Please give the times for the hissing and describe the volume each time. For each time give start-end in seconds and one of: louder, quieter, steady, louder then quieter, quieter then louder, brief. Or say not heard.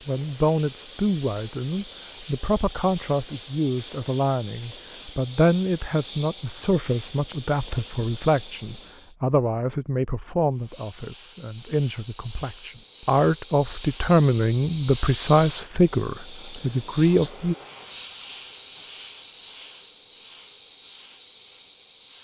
0.0-9.2 steady
10.5-22.1 louder then quieter.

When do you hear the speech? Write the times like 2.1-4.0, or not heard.
0.1-17.6.